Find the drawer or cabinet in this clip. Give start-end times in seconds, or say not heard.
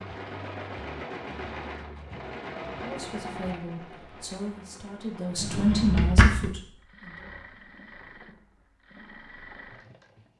5.3-6.5.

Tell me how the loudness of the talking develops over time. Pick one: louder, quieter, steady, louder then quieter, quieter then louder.
louder then quieter.